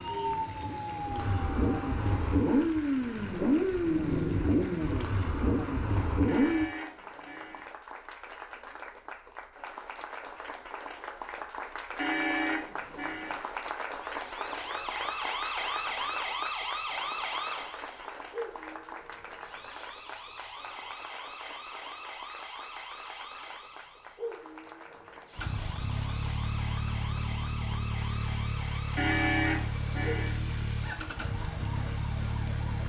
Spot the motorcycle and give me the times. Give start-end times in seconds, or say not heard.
0.0-6.7, 25.4-32.8.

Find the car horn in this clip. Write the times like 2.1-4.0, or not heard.
6.2-7.7, 11.9-13.3, 28.9-30.3.